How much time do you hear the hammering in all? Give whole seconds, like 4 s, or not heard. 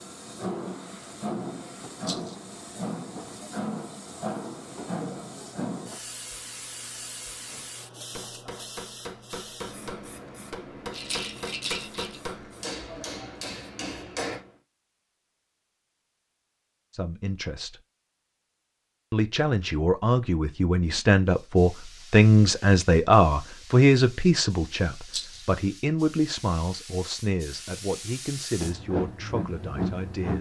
7 s.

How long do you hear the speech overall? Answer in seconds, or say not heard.
12 s.